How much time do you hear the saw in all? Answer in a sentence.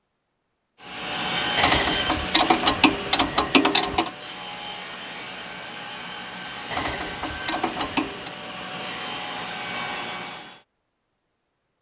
The saw can be heard for 10 seconds in total.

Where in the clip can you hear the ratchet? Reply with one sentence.
The ratchet can be heard from 1.6 to 4.1 s and from 6.7 to 8.3 s.